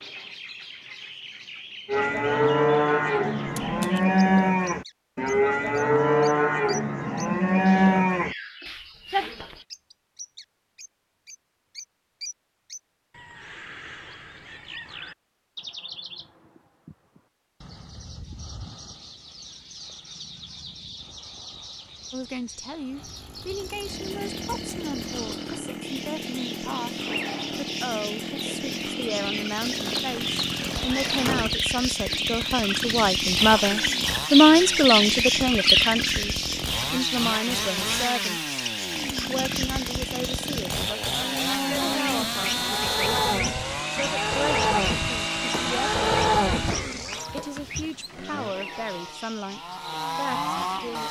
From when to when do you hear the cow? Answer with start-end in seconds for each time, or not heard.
1.9-9.6, 41.0-48.5.